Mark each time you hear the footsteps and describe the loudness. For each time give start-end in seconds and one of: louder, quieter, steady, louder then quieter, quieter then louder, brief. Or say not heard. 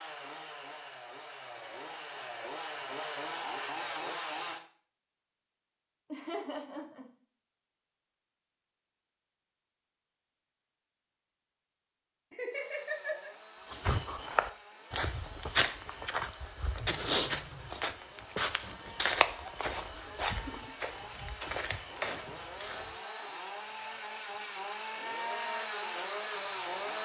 13.7-22.9 quieter.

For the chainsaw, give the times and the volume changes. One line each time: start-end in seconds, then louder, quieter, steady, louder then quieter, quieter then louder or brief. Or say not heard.
0.0-4.6 louder
12.5-27.0 louder.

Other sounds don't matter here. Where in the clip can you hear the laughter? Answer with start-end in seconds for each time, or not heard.
6.1-7.0, 12.3-13.3, 19.9-20.8.